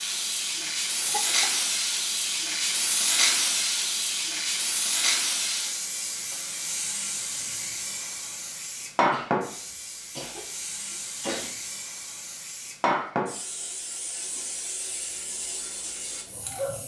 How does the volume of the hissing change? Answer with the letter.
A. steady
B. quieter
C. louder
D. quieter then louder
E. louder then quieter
B.